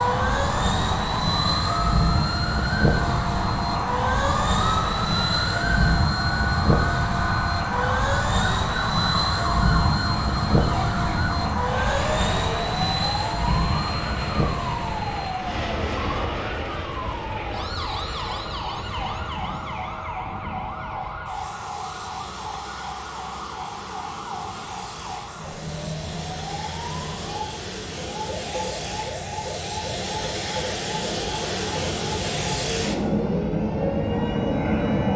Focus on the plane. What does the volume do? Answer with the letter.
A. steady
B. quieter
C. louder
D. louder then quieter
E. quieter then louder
E.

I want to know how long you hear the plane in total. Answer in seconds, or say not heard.
35 s.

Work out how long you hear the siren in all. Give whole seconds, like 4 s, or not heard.
35 s.